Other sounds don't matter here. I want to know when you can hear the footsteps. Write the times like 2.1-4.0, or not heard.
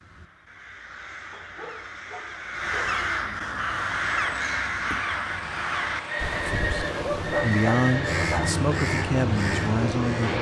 not heard.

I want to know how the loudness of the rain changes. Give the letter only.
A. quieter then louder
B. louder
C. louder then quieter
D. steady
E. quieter
B.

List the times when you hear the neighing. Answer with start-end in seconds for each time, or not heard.
6.0-8.4.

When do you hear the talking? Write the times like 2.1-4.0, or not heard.
6.3-10.3.